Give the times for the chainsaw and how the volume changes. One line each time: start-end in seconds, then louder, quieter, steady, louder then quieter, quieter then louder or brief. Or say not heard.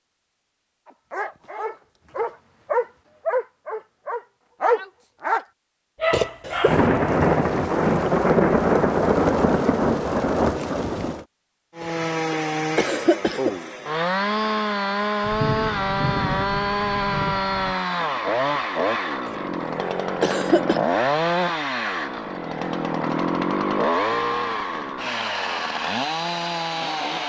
11.8-27.2 steady.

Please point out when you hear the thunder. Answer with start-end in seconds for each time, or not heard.
6.7-11.2, 15.2-17.8.